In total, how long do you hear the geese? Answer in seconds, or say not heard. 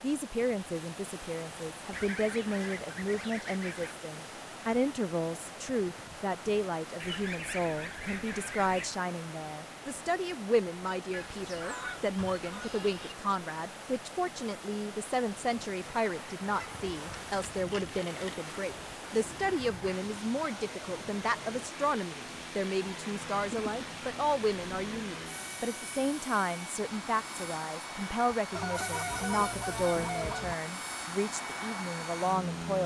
12 s.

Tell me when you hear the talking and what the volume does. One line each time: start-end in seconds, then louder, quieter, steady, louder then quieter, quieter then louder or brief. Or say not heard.
0.0-32.8 steady.